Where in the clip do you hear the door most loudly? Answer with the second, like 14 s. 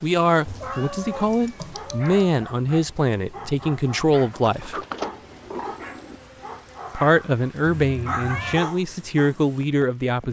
5 s.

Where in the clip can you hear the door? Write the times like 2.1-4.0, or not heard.
4.3-6.2.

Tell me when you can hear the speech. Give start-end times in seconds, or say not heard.
0.0-4.8, 6.9-10.2.